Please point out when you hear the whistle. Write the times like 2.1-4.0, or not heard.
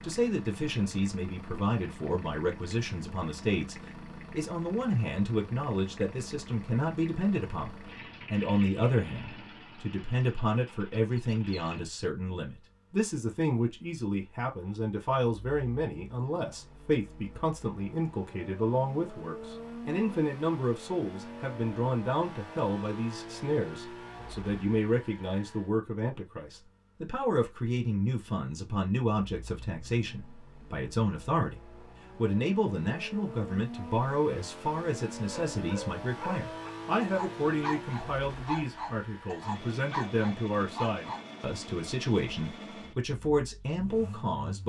not heard.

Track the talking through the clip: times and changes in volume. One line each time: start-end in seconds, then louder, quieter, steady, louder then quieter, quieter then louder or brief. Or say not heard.
0.0-44.6 steady.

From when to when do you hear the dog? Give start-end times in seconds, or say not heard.
35.5-41.2.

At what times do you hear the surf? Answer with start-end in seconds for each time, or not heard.
not heard.